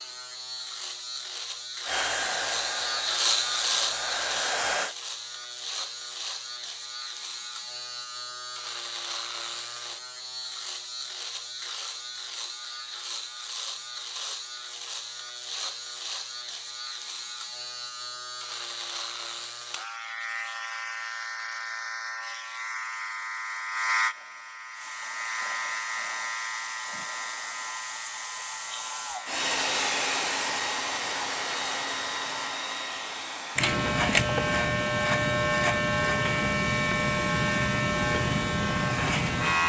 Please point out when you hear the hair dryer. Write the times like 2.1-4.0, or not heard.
1.9-5.0, 24.8-39.6.